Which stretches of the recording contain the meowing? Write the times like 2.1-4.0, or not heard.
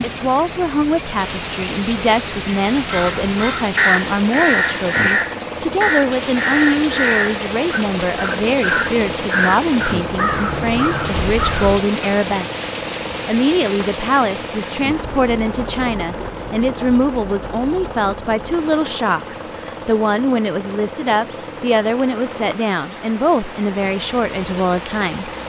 not heard.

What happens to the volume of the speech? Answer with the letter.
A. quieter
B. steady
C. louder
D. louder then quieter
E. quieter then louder
B.